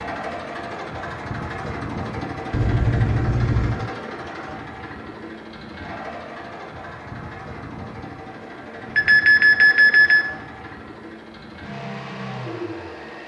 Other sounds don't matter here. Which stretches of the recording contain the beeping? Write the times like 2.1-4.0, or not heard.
2.5-3.9, 8.9-10.2.